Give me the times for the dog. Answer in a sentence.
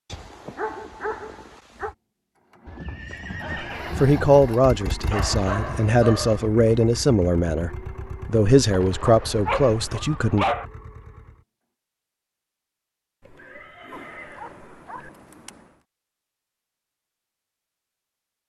The dog can be heard from 0.1 to 1.9 s, from 5.1 to 6.4 s, from 9.4 to 10.7 s and from 13.9 to 15.6 s.